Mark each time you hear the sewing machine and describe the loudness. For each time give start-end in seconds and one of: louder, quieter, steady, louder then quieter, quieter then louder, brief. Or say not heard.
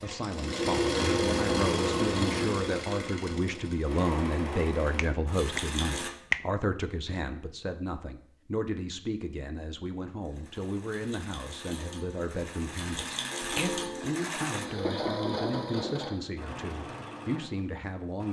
0.0-6.1 quieter
10.2-18.2 louder then quieter.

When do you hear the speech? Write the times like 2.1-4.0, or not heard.
0.0-18.2.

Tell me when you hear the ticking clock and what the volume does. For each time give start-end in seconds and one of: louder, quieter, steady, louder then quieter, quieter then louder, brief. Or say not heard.
not heard.